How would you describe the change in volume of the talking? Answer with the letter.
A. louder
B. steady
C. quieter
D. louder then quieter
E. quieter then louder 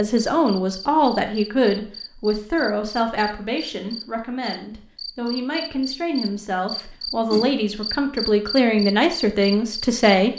E.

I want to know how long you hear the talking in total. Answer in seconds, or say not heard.
10 s.